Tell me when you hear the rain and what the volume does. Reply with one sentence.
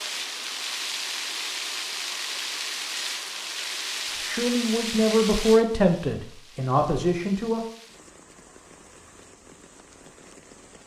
You can hear the rain from 0.0 to 10.8 s, getting quieter.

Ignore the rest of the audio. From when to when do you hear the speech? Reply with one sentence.
The speech can be heard from 4.2 to 7.6 s.